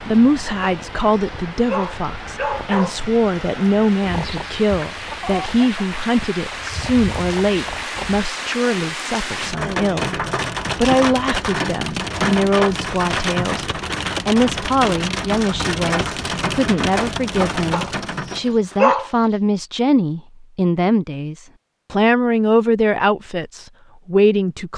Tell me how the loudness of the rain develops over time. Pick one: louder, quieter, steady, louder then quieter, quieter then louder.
louder.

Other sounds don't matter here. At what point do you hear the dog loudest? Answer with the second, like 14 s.
19 s.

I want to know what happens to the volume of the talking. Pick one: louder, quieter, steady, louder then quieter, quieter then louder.
steady.